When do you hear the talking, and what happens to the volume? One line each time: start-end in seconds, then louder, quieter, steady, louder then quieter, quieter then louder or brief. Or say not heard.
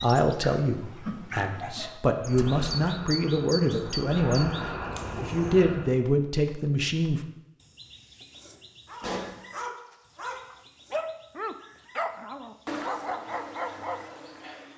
0.0-4.5 quieter then louder
5.2-7.2 brief.